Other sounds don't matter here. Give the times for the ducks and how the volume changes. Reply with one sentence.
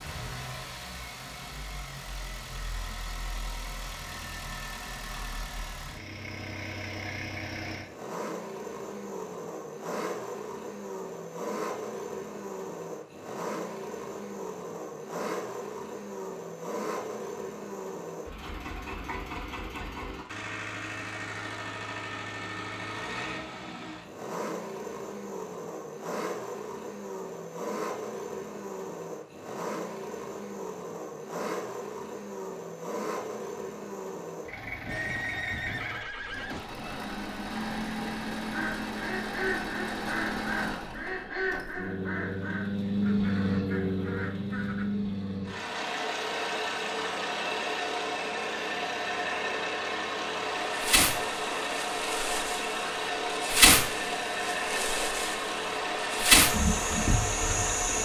The ducks can be heard from 38.5 to 45.0 s, getting quieter.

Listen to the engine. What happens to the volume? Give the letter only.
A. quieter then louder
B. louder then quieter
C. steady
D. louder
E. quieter
D.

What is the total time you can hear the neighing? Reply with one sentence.
You can hear the neighing for 2 seconds altogether.